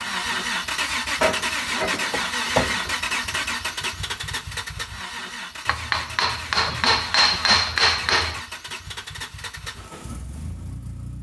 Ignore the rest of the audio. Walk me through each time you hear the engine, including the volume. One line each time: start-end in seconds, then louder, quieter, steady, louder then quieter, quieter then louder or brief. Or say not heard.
0.0-11.1 quieter.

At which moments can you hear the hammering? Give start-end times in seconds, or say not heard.
1.2-2.8, 5.7-8.4.